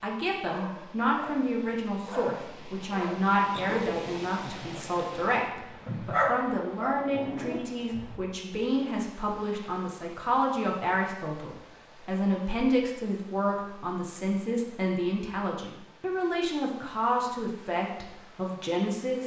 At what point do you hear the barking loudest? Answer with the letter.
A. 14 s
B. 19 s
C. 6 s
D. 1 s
C.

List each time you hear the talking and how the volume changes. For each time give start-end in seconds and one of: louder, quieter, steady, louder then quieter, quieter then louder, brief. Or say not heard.
0.0-19.2 steady.